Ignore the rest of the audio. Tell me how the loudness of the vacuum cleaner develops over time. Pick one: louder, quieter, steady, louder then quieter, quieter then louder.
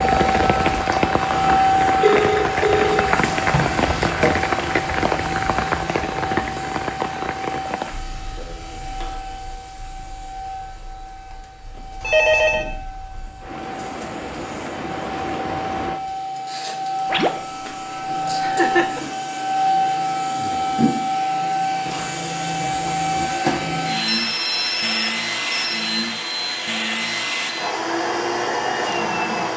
quieter then louder.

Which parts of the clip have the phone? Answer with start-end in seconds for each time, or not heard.
2.0-3.0, 12.0-12.7, 24.1-25.8.